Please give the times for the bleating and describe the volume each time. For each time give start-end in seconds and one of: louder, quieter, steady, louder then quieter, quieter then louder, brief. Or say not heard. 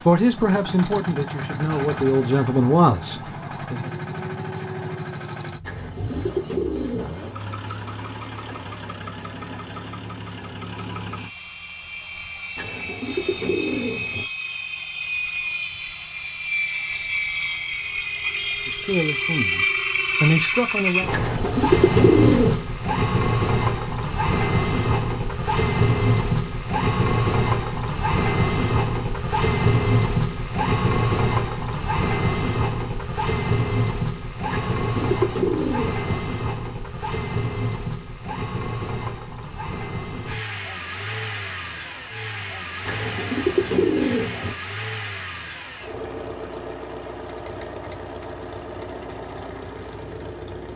not heard.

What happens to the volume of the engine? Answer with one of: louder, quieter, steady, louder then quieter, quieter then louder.
louder then quieter.